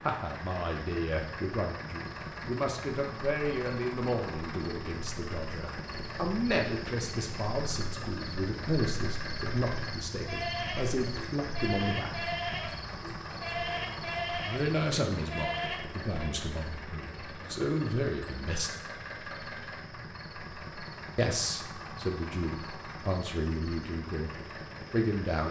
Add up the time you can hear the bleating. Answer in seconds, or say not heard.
6 s.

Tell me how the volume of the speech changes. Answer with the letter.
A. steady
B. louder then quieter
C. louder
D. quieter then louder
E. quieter
A.